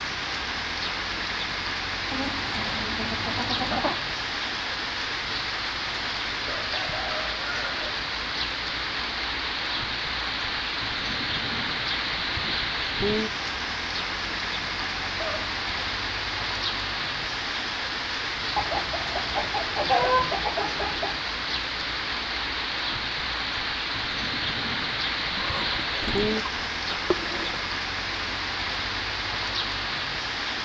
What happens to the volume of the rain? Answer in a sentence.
The loudness of the rain stays about the same.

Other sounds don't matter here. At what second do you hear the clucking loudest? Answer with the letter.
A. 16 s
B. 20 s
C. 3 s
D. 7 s
B.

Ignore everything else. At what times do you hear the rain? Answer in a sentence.
You can hear the rain from 0.0 to 30.5 s.